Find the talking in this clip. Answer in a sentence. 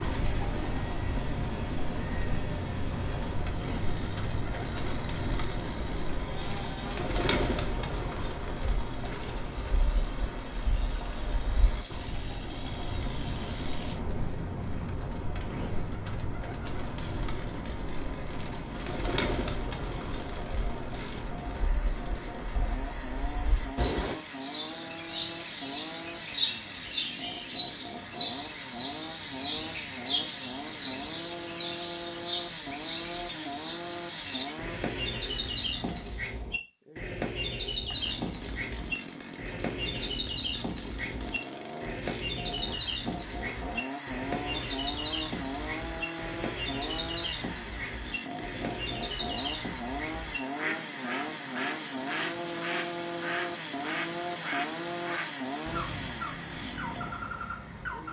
The talking can't be heard in this clip.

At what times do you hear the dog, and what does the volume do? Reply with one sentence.
You can't hear the dog here.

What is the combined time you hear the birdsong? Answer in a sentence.
The birdsong can be heard for 58 seconds in total.